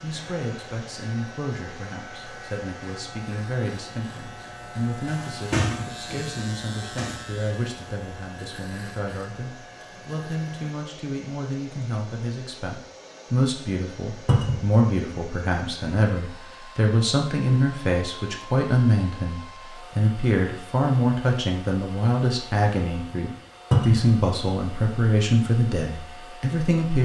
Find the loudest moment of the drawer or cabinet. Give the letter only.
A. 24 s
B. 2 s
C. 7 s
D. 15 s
A.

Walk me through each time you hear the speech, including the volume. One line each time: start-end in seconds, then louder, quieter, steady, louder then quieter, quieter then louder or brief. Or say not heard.
0.0-27.0 louder.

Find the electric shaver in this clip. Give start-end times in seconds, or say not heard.
0.0-10.8.